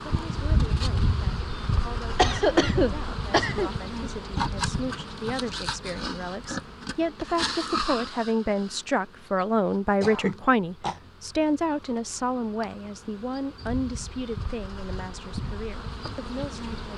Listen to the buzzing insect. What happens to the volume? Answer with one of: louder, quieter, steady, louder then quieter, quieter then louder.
quieter then louder.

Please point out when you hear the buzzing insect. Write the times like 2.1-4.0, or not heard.
0.0-16.9.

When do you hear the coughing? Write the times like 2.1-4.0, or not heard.
2.1-3.7, 10.0-11.0.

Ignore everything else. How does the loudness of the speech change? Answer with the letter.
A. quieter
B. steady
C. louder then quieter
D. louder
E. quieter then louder
C.